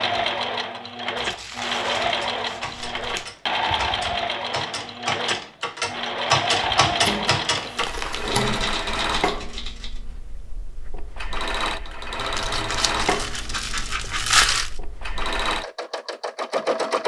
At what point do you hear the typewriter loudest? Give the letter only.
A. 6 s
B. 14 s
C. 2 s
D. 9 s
A.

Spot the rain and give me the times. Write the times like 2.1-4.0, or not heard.
not heard.